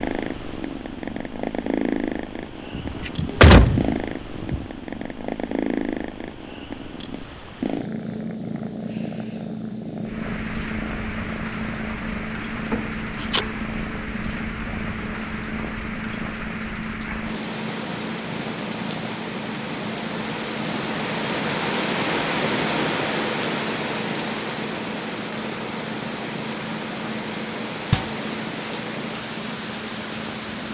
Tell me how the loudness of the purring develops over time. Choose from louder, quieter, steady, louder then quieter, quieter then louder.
quieter.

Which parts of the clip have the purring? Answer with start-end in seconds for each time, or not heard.
0.0-30.6.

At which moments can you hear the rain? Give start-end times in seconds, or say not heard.
10.0-30.6.